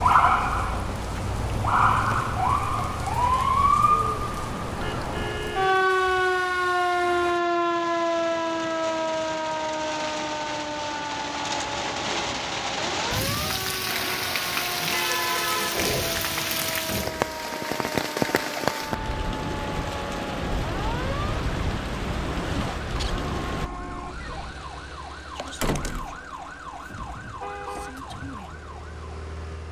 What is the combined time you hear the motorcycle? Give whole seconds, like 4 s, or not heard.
not heard.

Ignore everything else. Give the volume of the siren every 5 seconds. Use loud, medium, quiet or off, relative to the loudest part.
loud, loud, medium, quiet, quiet, quiet.